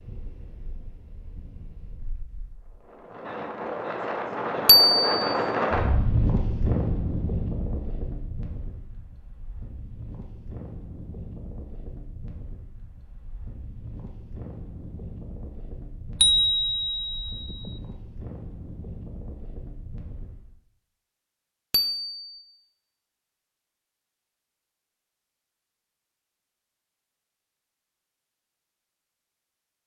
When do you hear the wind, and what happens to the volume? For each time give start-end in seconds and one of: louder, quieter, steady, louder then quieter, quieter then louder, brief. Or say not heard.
0.0-20.6 louder then quieter.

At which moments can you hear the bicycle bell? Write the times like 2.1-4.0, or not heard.
4.7-5.3, 16.2-17.7, 21.7-22.4.